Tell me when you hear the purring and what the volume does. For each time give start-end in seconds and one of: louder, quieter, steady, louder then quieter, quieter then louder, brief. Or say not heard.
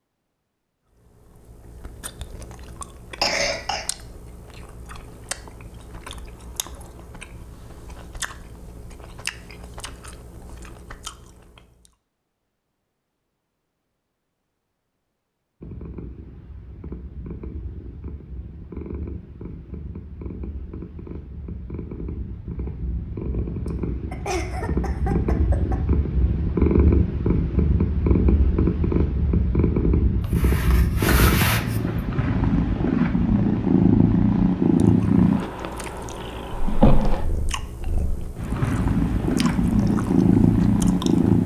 15.6-41.4 louder.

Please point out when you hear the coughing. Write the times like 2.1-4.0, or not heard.
3.2-3.9, 23.6-25.8, 30.2-31.9.